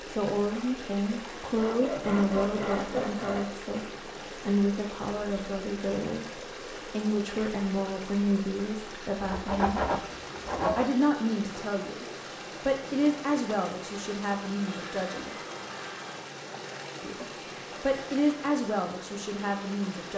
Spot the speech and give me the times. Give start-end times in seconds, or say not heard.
0.0-9.8, 10.8-15.3, 17.0-20.1.